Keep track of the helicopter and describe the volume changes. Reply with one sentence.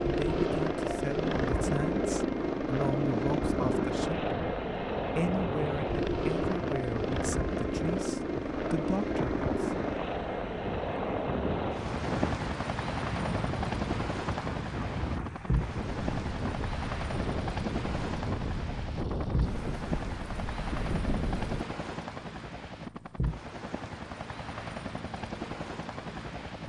The loudness of the helicopter goes down.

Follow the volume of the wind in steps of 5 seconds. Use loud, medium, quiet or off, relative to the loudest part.
loud, loud, loud, loud, loud, off.